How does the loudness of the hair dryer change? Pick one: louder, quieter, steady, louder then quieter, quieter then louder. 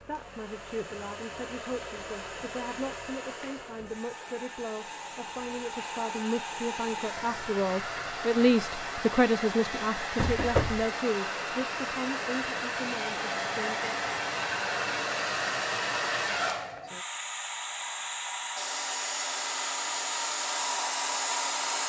louder.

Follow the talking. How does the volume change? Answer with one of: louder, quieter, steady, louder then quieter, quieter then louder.
louder then quieter.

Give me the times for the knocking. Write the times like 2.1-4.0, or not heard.
10.2-10.8.